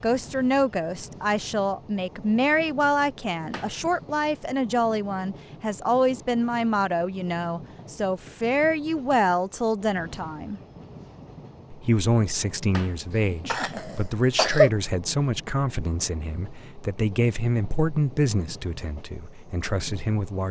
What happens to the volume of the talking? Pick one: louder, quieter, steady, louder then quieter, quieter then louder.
steady.